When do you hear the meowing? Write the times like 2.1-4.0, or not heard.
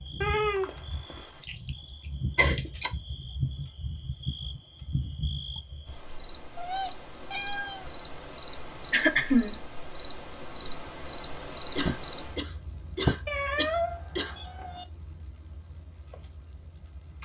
0.2-1.4, 6.5-8.0, 13.2-14.8.